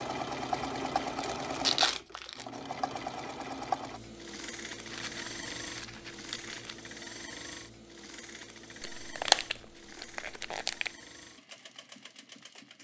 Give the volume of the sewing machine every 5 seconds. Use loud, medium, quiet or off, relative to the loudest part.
loud, medium, quiet.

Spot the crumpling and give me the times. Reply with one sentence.
You can hear the crumpling from 1.1 to 2.5 s, from 4.8 to 6.8 s and from 8.8 to 10.9 s.